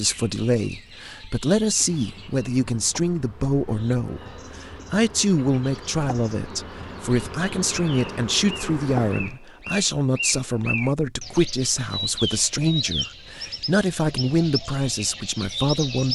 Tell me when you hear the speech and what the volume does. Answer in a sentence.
You can hear the speech from 0.0 to 16.1 s, at a steady volume.